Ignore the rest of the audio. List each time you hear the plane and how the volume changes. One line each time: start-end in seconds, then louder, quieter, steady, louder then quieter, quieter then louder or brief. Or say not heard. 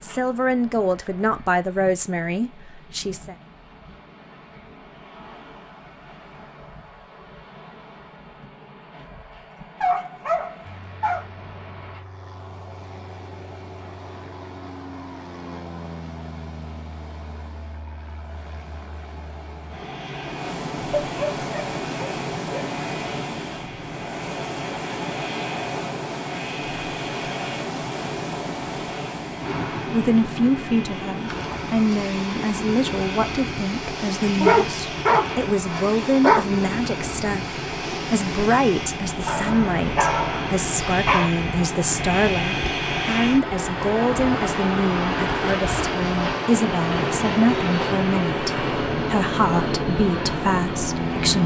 10.7-51.4 louder.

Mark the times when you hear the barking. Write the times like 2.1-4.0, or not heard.
9.8-11.2, 20.9-22.7, 34.4-36.4, 39.2-41.3.